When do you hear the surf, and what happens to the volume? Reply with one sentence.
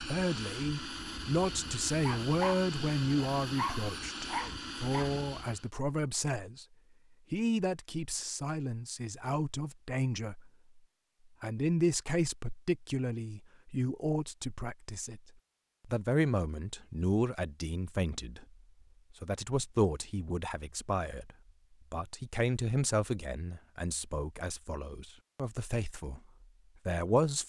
The surf can't be heard in this clip.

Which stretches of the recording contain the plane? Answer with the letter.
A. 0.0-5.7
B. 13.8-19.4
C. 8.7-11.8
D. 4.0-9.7
A.